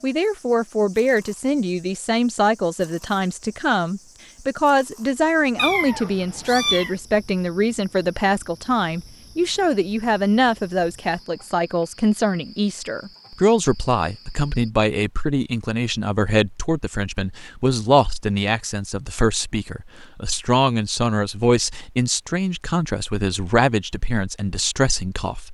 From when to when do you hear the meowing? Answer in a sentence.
You can hear the meowing from 5.5 to 7.0 s.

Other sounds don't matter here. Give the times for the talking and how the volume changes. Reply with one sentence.
The talking can be heard from 0.0 to 25.4 s, at a steady volume.